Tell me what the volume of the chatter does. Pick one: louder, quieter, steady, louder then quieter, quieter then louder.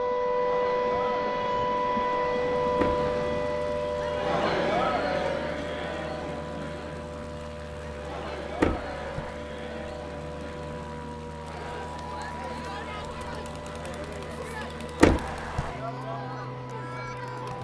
louder then quieter.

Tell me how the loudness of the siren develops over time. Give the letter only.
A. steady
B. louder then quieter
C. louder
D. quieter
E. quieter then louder
D.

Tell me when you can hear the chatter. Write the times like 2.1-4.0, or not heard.
0.2-17.5.